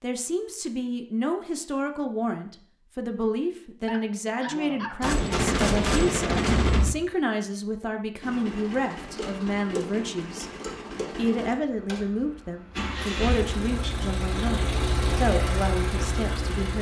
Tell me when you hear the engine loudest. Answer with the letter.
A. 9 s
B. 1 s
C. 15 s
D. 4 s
C.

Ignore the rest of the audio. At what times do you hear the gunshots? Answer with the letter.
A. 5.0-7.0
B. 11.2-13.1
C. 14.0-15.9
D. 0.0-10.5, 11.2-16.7
A.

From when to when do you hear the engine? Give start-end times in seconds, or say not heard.
8.2-16.7.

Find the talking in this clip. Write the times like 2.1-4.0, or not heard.
0.0-10.5, 11.2-16.7.